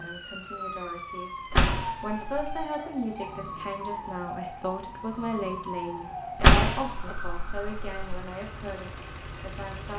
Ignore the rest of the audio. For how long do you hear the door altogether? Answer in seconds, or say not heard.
3 s.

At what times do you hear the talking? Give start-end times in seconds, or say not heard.
0.0-9.9.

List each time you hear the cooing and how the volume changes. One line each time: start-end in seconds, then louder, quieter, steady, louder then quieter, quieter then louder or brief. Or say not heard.
not heard.